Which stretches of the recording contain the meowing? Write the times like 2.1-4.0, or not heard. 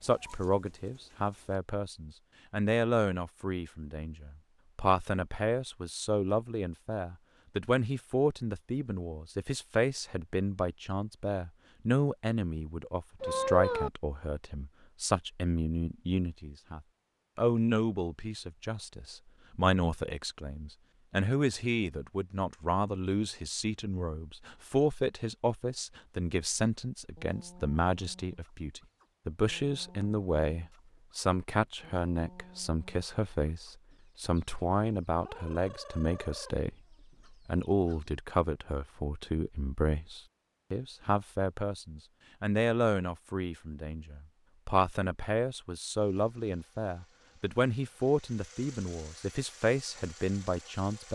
13.2-13.9.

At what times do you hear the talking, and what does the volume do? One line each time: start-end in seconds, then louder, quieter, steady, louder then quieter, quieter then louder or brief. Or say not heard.
0.0-51.1 steady.